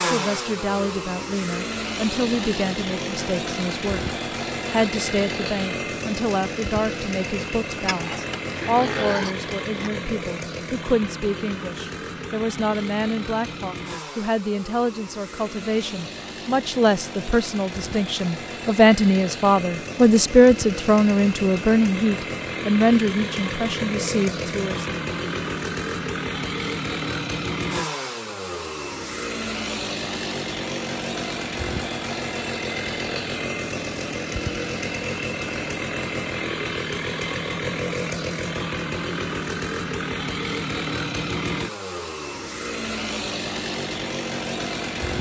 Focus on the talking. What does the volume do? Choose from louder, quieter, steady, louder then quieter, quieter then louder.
louder.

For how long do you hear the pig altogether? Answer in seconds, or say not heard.
2 s.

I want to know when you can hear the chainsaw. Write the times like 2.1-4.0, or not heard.
0.0-45.1.